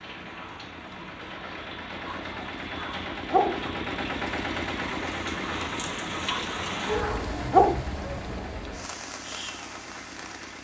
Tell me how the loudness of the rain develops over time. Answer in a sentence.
The volume of the rain goes up, then down.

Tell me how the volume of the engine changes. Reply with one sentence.
The loudness of the engine goes up, then down.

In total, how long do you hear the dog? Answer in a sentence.
You can hear the dog for 3 seconds altogether.